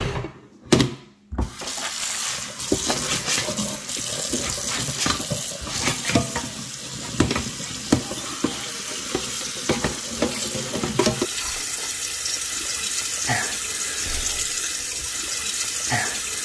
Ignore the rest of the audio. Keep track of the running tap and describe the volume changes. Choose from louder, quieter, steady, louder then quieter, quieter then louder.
steady.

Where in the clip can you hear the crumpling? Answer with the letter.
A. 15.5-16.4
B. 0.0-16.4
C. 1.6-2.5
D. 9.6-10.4
C.